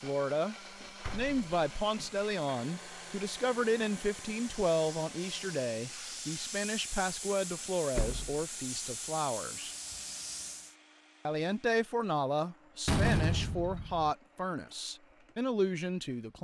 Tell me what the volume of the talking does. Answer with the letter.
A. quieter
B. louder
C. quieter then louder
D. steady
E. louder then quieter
D.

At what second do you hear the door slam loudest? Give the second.
13 s.